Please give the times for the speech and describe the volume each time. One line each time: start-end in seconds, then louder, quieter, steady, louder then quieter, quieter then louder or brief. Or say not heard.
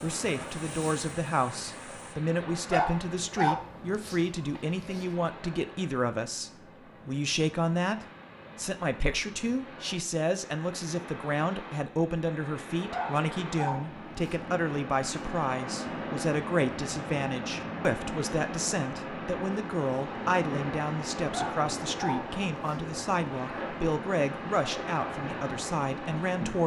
0.0-26.6 steady.